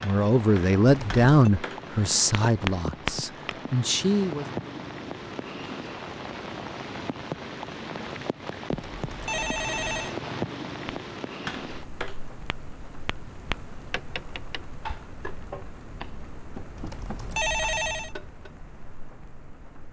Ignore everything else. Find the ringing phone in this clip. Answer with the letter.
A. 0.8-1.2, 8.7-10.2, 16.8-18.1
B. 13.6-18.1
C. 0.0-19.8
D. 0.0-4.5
A.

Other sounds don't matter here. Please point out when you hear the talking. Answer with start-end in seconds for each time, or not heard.
0.0-4.5.